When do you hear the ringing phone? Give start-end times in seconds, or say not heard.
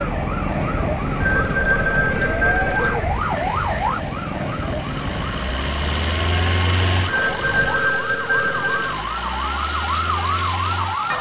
1.2-3.0, 7.0-8.9.